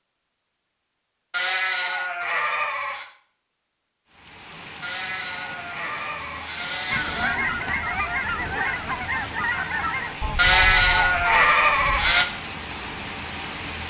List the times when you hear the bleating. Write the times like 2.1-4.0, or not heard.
1.3-3.0, 4.8-7.3, 10.3-12.2.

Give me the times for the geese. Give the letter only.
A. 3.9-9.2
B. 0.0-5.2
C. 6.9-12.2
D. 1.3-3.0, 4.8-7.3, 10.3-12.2
C.